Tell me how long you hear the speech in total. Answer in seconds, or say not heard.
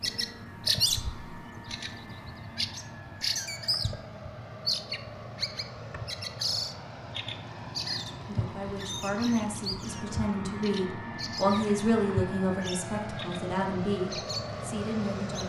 7 s.